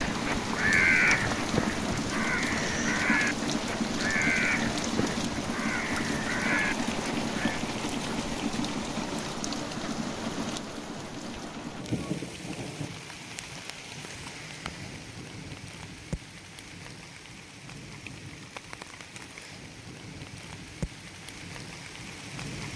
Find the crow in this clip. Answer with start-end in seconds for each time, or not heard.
0.0-7.7.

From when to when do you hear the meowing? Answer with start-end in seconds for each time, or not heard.
not heard.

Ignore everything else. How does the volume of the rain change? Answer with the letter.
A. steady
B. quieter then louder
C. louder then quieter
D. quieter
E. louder
D.